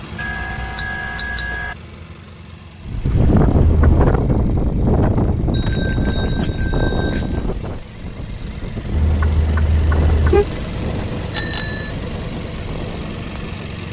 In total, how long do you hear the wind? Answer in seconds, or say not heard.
11 s.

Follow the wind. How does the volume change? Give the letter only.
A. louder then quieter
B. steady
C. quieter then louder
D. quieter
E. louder
D.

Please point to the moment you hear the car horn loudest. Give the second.
10 s.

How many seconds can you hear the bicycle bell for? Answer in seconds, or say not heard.
4 s.